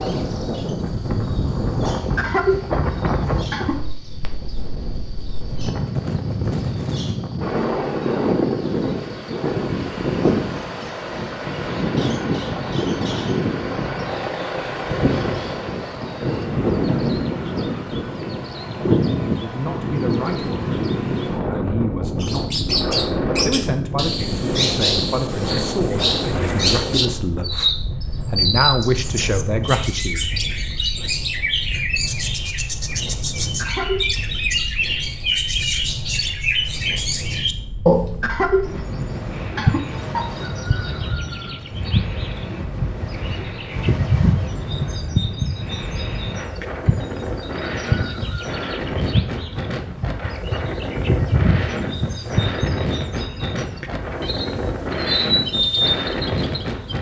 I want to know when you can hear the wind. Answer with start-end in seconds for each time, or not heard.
0.0-56.9.